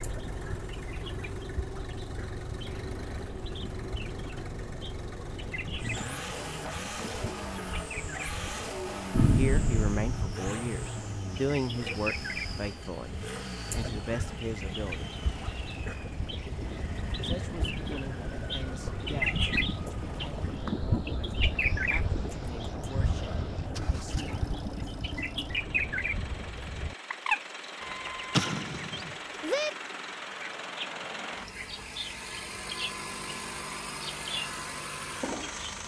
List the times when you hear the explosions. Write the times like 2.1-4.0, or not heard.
9.1-10.4, 28.3-29.1.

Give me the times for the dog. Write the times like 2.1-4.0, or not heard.
not heard.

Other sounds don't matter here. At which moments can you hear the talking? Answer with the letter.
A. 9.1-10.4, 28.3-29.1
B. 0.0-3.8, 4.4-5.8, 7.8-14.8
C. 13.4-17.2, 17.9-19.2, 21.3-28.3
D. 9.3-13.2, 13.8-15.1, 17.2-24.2
D.